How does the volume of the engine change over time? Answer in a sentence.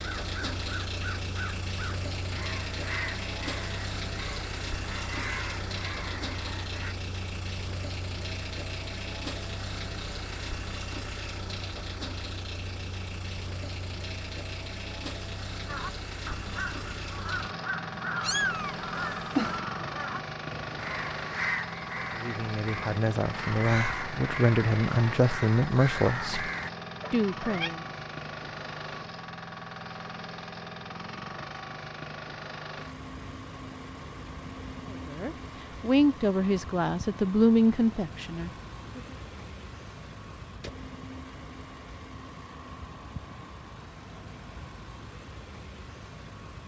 The loudness of the engine goes down.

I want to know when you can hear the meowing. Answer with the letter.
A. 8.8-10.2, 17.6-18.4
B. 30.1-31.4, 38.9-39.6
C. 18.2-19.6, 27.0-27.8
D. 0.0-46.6
C.